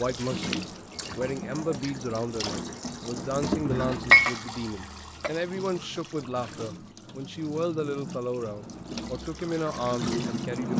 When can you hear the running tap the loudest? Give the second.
4 s.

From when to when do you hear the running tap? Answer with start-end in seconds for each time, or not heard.
0.0-10.7.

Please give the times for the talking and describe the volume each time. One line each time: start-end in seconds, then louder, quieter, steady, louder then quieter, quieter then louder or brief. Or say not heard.
0.0-10.7 steady.